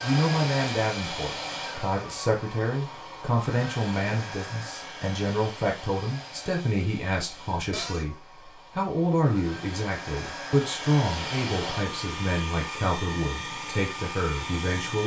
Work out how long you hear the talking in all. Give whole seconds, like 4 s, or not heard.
15 s.